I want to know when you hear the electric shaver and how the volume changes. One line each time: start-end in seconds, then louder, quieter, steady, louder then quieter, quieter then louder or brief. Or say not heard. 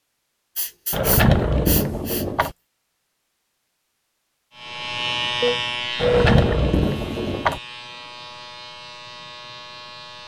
4.5-10.2 quieter.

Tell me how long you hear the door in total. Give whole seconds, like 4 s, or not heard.
3 s.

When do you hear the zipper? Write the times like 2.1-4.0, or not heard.
not heard.